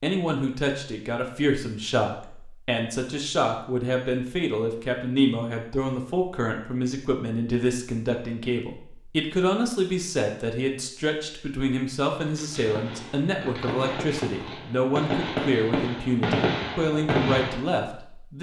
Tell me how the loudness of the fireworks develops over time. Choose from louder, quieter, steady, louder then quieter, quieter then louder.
louder.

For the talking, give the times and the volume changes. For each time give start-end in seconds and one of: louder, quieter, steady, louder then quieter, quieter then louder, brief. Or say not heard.
0.0-18.3 steady.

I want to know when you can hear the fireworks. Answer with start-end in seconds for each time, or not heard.
12.2-17.6.